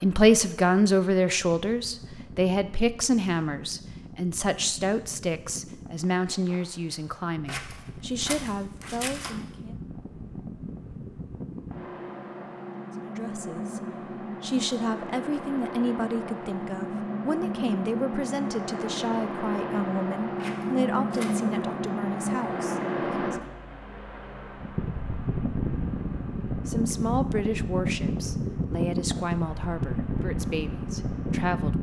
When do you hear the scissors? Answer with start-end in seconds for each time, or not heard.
7.5-9.3, 20.4-21.4.